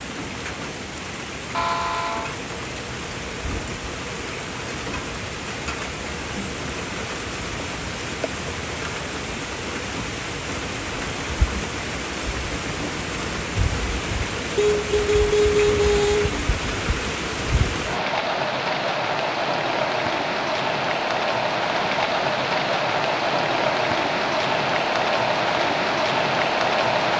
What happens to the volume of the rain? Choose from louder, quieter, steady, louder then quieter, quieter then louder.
louder.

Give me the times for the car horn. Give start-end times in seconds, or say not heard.
1.5-2.4, 14.6-16.4.